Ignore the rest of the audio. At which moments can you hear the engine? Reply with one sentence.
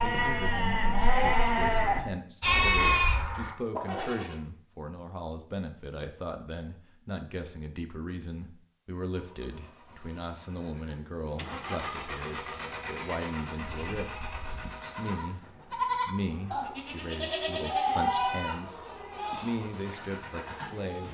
The engine can be heard from 9.1 to 21.0 s.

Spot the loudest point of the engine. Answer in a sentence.
The volume of the engine peaks at 12 seconds.